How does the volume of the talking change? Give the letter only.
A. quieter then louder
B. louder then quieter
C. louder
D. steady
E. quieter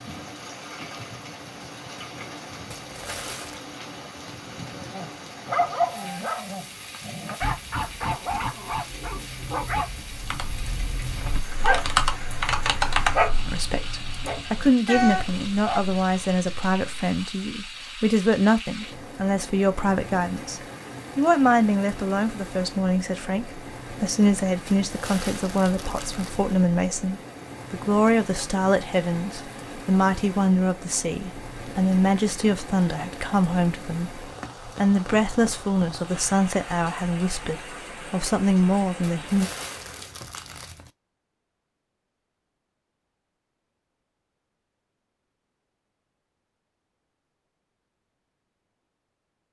D.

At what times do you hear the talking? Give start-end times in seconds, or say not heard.
13.4-39.5.